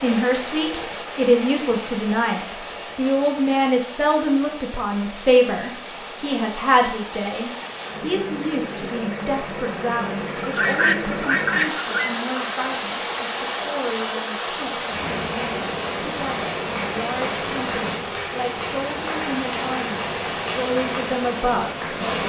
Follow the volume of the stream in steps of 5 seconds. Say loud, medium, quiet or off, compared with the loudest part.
medium, medium, loud, loud, loud.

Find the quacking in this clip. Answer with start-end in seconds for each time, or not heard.
10.4-11.8.